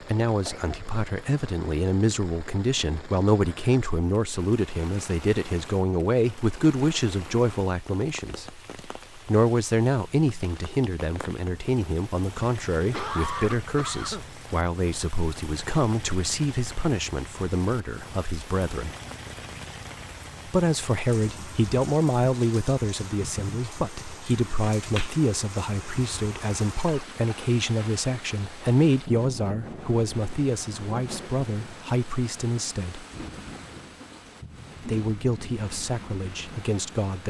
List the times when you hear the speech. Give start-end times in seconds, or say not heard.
0.0-18.9, 20.4-33.0, 34.8-37.2.